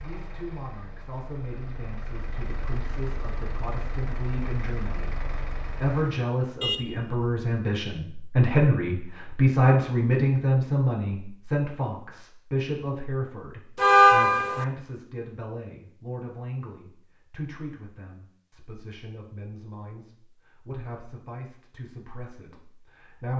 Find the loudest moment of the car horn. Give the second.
14 s.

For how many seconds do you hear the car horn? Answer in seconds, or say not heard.
2 s.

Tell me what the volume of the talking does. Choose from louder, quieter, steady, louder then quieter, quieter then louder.
louder then quieter.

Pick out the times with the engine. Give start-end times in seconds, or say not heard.
0.0-6.2.